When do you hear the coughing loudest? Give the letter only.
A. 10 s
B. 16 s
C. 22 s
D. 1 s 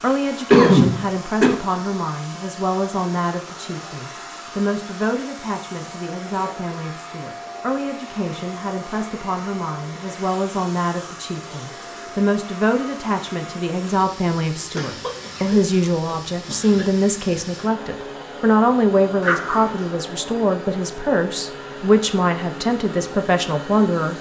D.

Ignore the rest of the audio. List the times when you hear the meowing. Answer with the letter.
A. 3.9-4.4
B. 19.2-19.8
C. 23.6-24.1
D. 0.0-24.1
B.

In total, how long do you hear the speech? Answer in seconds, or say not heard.
24 s.